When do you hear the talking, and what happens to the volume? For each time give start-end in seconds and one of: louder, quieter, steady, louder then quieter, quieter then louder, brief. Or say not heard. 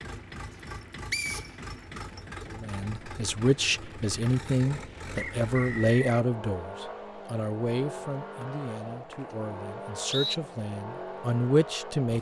2.5-12.1 quieter then louder.